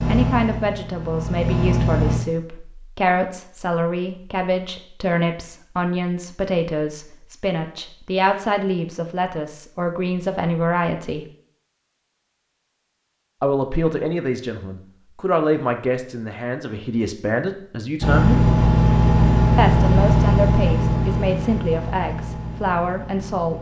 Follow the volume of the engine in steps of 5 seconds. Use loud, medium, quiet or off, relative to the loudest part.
medium, off, off, loud, medium.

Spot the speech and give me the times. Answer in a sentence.
The speech can be heard from 0.1 to 11.2 s, from 13.4 to 18.5 s and from 19.6 to 23.5 s.